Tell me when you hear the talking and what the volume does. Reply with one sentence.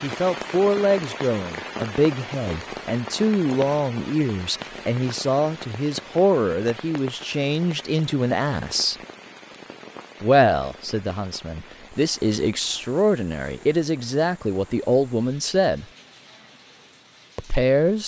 You can hear the talking from 0.0 to 8.9 s, at a steady volume; from 10.2 to 15.8 s, getting louder; and briefly from 17.4 to 18.0 s.